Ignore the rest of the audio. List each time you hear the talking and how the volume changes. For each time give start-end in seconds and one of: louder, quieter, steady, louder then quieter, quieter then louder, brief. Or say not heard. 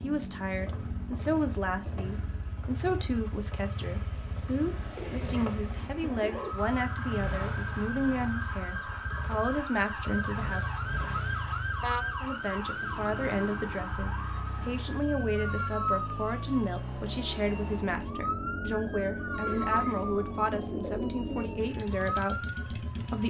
0.0-10.7 steady
12.2-23.2 steady.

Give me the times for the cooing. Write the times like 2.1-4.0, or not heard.
5.0-6.5, 19.4-21.5.